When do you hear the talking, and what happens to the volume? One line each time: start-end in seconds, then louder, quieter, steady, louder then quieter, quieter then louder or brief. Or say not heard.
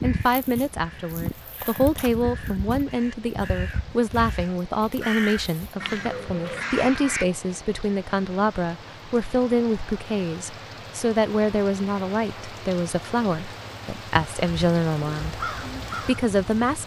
0.0-16.8 steady.